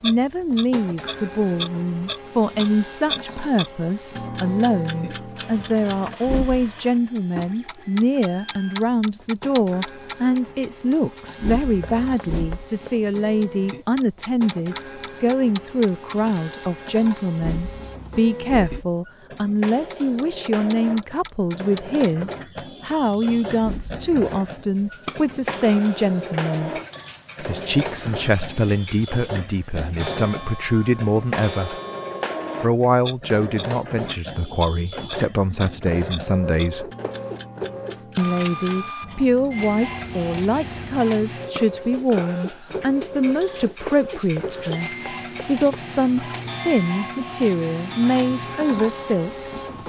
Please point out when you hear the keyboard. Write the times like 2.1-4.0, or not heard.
not heard.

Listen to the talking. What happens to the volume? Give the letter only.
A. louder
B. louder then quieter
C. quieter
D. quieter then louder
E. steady
E.